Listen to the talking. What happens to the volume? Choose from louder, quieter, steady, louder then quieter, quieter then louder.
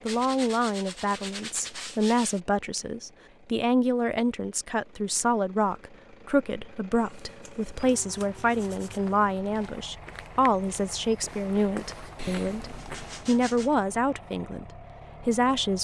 steady.